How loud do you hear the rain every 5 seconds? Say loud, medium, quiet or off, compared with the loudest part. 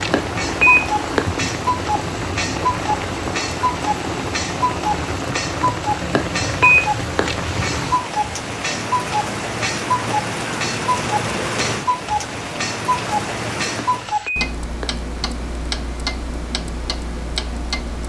loud, loud, loud, off.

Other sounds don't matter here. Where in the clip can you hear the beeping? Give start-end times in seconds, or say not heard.
0.1-1.3, 6.1-7.3, 13.8-14.9.